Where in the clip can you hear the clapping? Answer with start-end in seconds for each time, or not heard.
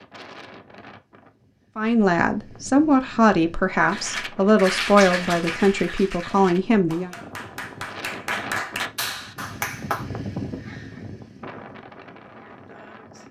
3.8-10.1.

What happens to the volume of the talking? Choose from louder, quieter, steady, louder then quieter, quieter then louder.
steady.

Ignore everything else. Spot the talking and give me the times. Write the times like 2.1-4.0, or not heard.
1.8-7.2.